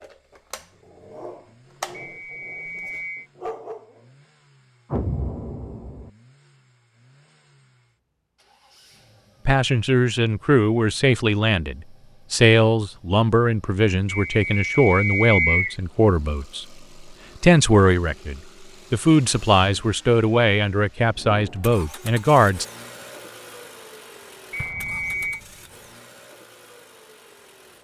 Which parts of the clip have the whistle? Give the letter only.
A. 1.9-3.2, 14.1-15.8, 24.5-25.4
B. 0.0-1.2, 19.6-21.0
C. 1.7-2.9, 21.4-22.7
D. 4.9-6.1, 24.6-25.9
A.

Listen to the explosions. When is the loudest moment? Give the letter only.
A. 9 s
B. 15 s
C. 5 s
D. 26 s
C.